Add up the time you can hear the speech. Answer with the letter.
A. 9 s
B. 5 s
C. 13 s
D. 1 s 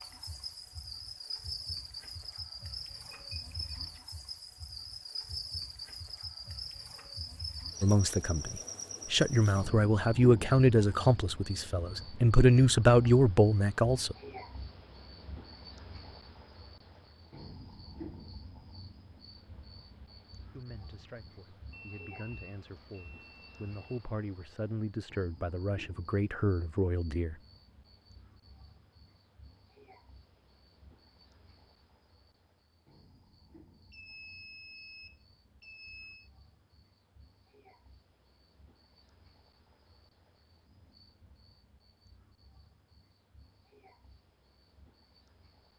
C.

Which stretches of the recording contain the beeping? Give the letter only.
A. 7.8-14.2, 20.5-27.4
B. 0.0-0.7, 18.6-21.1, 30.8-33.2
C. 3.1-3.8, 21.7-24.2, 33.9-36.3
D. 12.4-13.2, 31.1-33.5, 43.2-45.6
C.